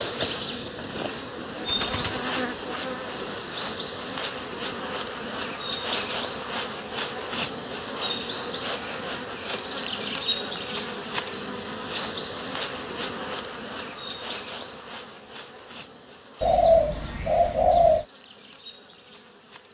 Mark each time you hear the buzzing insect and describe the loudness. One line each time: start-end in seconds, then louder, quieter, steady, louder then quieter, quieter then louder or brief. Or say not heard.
0.0-19.6 quieter.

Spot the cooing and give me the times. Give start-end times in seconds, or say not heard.
1.4-3.5, 16.4-18.1.